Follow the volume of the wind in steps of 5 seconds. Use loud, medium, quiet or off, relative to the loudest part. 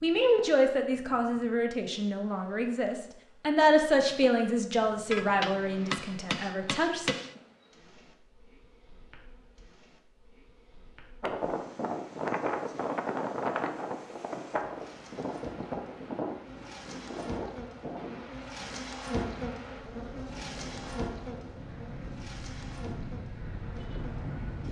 off, off, loud, medium, medium.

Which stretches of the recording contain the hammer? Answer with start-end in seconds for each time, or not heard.
5.0-7.3.